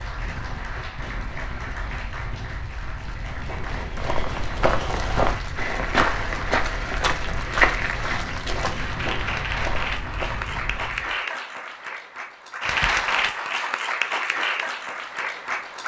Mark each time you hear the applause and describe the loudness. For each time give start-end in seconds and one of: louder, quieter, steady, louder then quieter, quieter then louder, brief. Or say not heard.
0.0-15.8 louder.